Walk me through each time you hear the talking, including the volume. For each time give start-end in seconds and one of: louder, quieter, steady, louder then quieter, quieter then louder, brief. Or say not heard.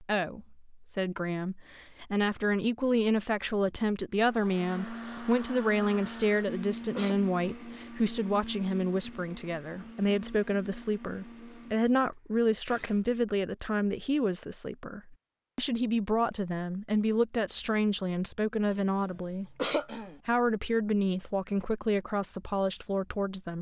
0.0-23.5 steady.